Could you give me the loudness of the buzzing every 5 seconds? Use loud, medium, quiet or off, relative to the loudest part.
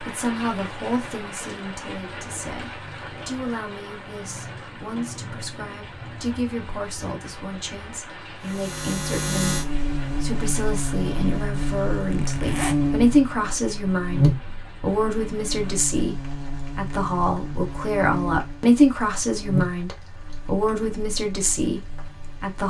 off, loud, loud, medium, quiet.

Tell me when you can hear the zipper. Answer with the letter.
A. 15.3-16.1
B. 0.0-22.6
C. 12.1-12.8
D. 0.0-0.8
C.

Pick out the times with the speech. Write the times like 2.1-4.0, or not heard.
0.0-22.6.